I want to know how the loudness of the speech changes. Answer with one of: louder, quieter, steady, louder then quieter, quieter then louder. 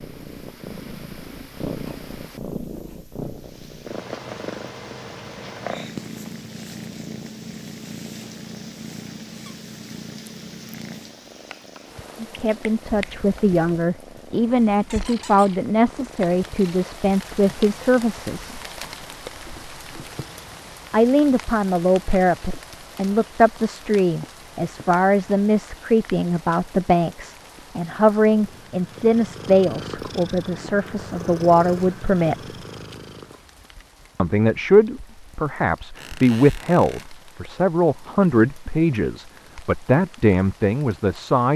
steady.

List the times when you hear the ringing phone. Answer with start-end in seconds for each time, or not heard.
not heard.